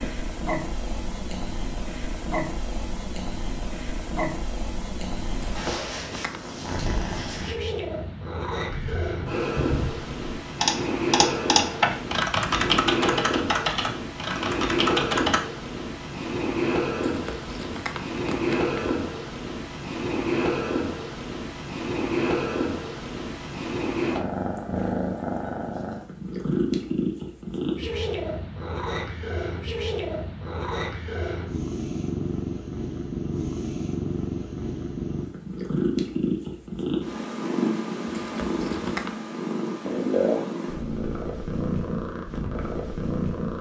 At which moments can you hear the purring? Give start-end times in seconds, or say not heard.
0.0-43.5.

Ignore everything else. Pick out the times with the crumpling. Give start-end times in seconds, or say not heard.
5.3-6.4, 17.1-18.9, 38.0-39.1.